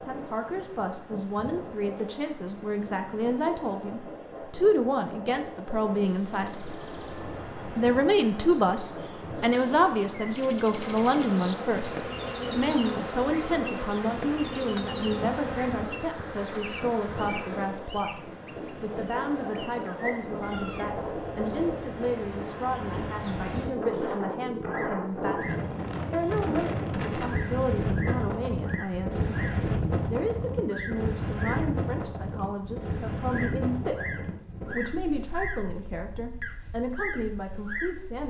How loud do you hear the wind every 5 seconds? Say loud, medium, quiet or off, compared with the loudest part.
medium, medium, medium, medium, loud, loud, loud, quiet.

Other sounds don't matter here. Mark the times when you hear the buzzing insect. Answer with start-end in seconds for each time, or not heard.
10.8-17.7.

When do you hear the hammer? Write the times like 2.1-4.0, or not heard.
not heard.